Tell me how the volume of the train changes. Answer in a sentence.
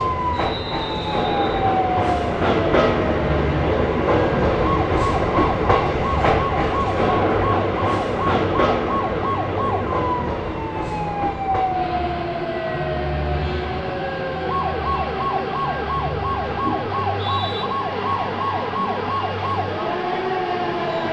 The volume of the train goes down.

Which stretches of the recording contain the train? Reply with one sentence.
The train can be heard from 0.0 to 21.0 s.